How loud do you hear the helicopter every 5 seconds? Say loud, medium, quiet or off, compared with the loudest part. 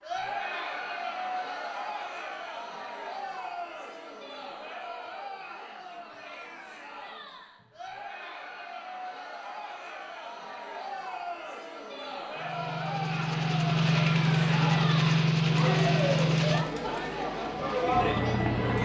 off, off, loud, loud.